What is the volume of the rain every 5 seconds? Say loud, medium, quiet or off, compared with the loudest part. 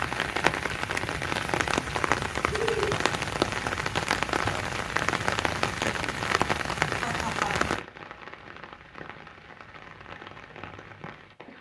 loud, loud, quiet.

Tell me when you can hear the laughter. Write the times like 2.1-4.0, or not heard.
2.5-3.0, 7.0-7.5.